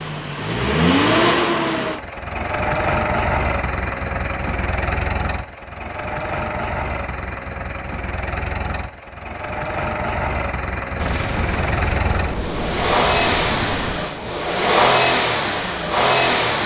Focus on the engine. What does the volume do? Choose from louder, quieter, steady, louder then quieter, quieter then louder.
quieter then louder.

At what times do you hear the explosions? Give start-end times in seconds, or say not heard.
10.9-14.1.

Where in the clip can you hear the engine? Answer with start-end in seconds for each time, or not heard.
0.0-16.6.